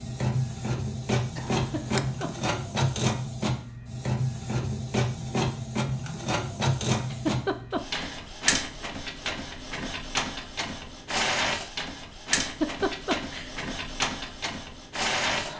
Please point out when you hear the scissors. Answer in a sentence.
You can hear the scissors from 1.4 to 2.2 s.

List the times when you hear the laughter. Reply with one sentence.
You can hear the laughter from 1.6 to 2.5 s, from 7.0 to 8.2 s and from 12.4 to 13.5 s.